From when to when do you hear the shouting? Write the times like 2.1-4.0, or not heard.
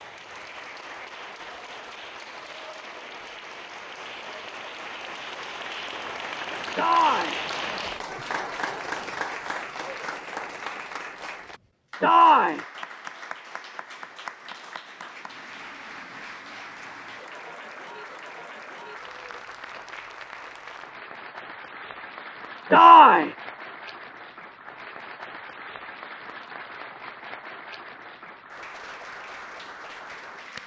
6.8-7.4, 12.0-12.7, 22.7-23.3.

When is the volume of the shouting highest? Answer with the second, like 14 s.
23 s.